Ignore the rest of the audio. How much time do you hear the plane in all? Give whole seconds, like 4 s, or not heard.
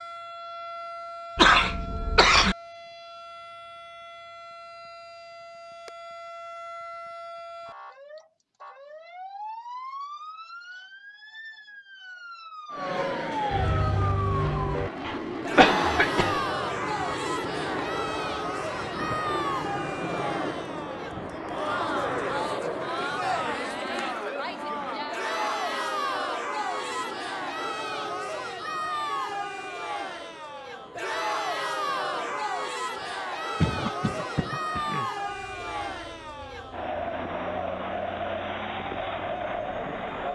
26 s.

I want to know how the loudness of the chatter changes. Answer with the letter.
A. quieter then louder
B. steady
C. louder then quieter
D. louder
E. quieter
B.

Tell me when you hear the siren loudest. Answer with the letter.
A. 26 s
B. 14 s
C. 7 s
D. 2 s
B.